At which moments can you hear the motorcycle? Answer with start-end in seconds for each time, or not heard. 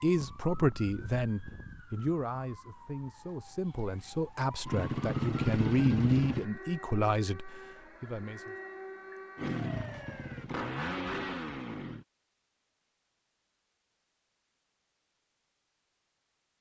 4.7-6.5, 9.3-12.1.